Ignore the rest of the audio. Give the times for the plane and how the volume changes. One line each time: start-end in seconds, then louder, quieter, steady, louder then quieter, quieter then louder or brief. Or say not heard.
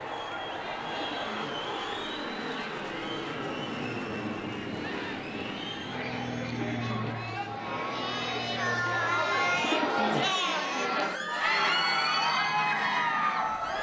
0.0-13.7 quieter.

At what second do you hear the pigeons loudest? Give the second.
10 s.